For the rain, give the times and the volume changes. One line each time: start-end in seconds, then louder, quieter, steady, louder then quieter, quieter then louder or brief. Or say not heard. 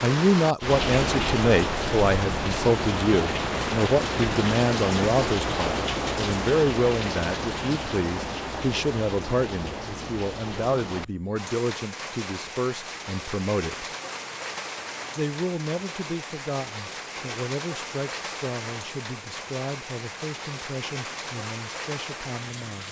0.0-22.8 quieter.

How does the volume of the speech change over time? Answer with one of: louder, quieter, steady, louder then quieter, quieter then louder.
quieter.